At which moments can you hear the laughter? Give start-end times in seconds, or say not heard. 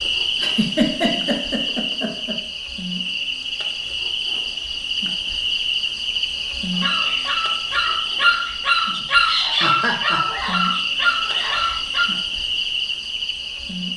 0.4-2.4, 9.0-10.2.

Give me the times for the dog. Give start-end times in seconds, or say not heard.
6.8-12.1.